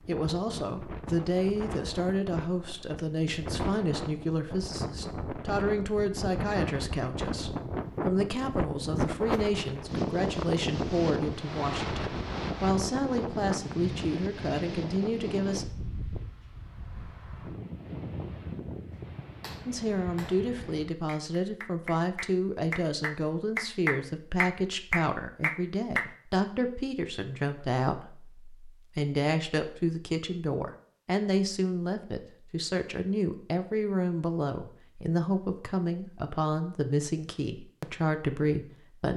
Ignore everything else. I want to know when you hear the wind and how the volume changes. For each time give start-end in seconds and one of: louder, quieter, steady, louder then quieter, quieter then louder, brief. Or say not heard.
0.0-20.9 louder then quieter.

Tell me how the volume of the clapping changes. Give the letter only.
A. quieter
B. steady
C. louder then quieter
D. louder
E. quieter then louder
D.